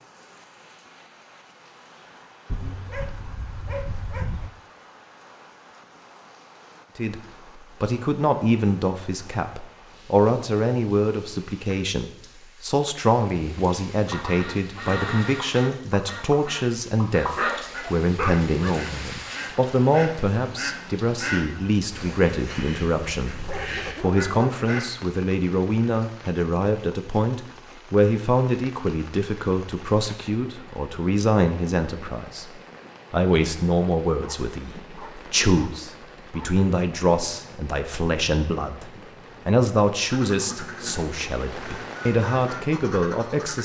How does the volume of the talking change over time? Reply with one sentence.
The volume of the talking stays about the same.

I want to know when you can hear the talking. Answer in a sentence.
The talking can be heard from 7.0 to 32.5 s and from 33.1 to 43.6 s.